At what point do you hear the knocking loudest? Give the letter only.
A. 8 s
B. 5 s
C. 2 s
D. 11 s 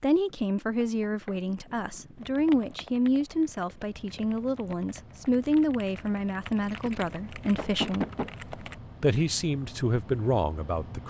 A.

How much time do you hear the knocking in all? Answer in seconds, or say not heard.
2 s.